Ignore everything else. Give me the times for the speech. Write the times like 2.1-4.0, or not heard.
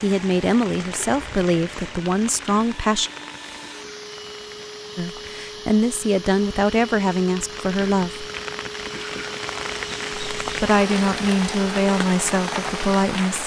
0.0-3.1, 5.0-8.2, 10.4-13.4.